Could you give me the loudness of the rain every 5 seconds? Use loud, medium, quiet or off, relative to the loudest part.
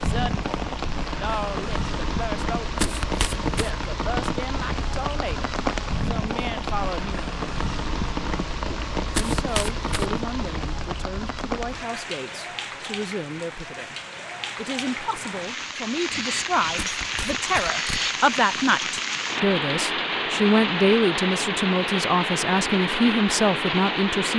loud, loud, medium, loud, loud.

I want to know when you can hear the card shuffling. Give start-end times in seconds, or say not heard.
2.8-3.8, 9.1-10.1, 16.8-18.1.